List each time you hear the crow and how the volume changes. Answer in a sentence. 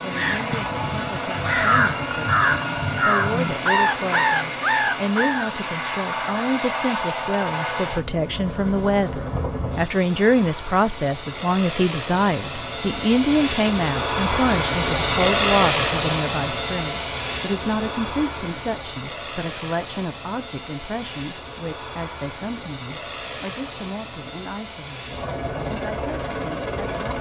The crow can be heard from 0.1 to 5.5 s, getting louder.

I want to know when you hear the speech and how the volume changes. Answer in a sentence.
You can hear the speech from 0.0 to 27.1 s, getting louder then quieter.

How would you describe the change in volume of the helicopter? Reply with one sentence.
The volume of the helicopter goes up, then down.